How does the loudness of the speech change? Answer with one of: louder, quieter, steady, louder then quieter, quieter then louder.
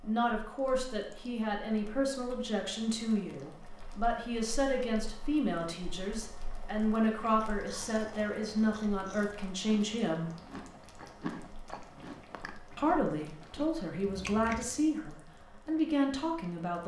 steady.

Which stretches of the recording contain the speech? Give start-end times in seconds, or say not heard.
0.0-10.3, 12.8-16.8.